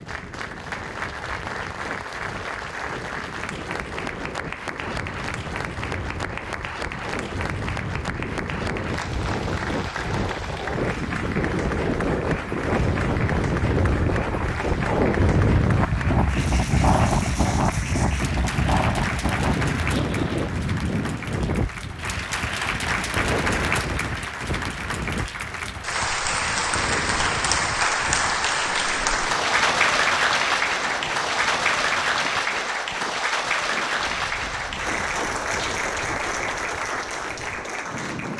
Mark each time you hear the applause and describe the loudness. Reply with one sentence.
You can hear the applause from 0.0 to 38.3 s, getting louder.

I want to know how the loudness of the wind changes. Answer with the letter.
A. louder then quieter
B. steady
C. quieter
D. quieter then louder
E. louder
A.